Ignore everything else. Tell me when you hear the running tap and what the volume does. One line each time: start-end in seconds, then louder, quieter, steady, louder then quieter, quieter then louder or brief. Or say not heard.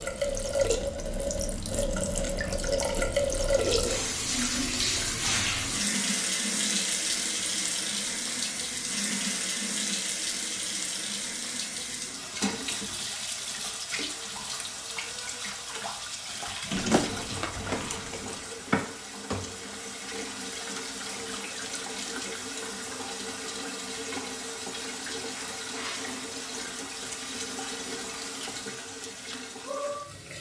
0.0-30.3 quieter.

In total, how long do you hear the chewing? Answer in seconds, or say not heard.
2 s.